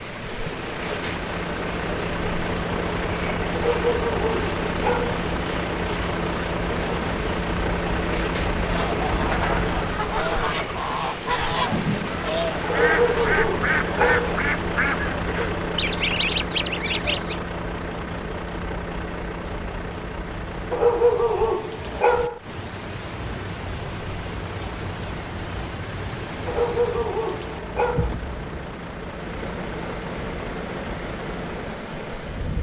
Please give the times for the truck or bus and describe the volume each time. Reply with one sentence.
The truck or bus can be heard from 0.0 to 32.5 s, getting quieter.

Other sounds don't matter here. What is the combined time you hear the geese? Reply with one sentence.
You can hear the geese for 9 seconds altogether.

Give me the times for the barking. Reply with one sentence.
The barking can be heard from 3.5 to 5.2 s, from 12.7 to 14.3 s, from 20.7 to 22.4 s and from 26.4 to 28.1 s.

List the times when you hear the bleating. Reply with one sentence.
You can't hear the bleating here.